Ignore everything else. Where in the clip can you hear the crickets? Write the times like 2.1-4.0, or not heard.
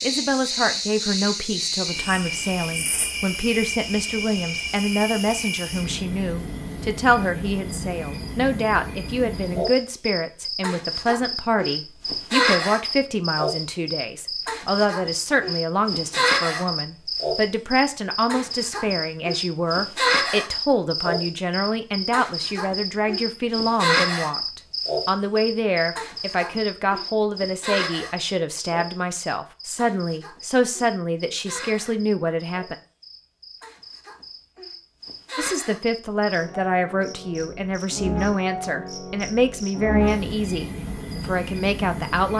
0.0-42.3.